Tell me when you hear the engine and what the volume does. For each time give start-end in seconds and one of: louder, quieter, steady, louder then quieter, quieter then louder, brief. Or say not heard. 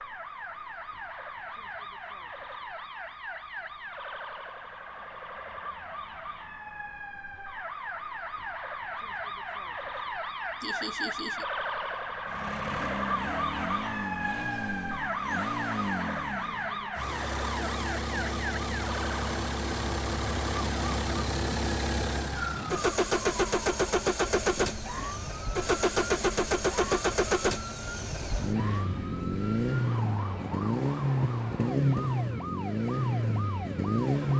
12.2-34.3 louder.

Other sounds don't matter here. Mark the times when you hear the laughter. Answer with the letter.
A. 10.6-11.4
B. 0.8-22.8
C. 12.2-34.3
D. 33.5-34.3
A.